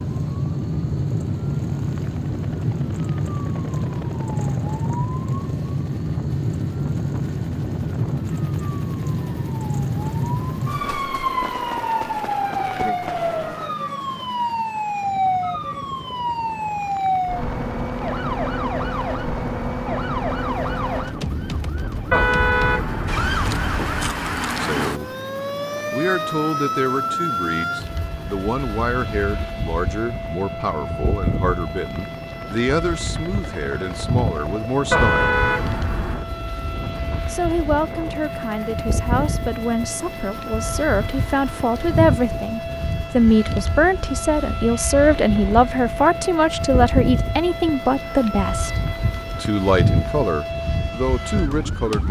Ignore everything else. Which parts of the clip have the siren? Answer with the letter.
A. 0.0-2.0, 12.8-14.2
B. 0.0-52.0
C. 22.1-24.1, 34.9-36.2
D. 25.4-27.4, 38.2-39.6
B.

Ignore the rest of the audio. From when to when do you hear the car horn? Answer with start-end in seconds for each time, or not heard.
22.1-24.1, 34.9-36.2.